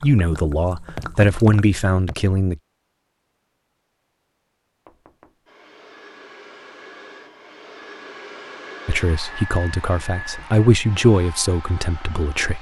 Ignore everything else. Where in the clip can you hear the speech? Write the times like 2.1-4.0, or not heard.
0.0-2.6, 8.8-12.5.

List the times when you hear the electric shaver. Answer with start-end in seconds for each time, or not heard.
not heard.